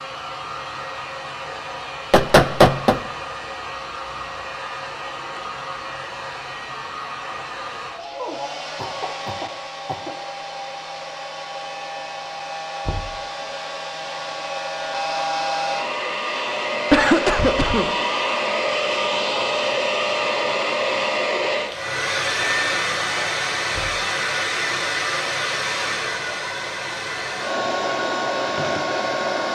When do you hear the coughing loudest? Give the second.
17 s.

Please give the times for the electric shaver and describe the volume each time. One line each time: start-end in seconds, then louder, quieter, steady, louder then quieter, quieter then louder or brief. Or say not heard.
not heard.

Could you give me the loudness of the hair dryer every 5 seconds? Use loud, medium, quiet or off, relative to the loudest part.
medium, medium, medium, loud, loud, loud.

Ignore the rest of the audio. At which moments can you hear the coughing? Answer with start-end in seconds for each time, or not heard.
8.2-10.2, 16.9-17.9.